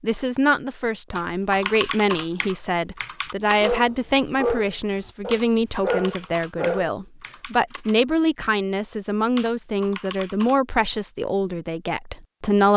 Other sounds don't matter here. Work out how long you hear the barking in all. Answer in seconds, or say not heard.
3 s.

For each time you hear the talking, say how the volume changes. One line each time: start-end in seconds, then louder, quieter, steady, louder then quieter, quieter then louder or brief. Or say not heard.
0.0-12.7 steady.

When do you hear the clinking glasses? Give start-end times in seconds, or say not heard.
not heard.